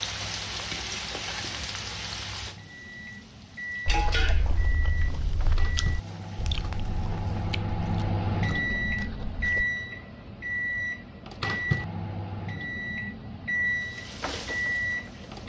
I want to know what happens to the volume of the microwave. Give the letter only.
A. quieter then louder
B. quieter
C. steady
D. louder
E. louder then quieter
D.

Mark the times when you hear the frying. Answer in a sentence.
The frying can be heard from 0.0 to 7.5 s and from 13.7 to 15.4 s.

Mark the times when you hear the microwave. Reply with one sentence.
The microwave can be heard from 0.0 to 15.4 s.